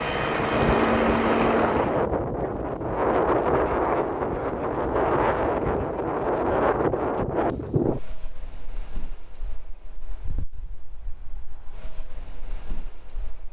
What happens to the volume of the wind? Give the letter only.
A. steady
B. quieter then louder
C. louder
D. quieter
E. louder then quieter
D.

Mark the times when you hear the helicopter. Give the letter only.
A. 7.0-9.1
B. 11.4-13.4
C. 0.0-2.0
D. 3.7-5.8
C.